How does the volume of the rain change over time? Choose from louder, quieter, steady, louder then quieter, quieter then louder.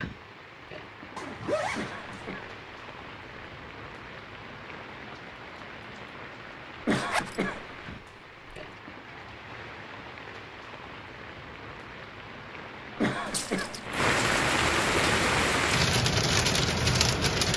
louder.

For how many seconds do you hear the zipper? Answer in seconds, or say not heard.
2 s.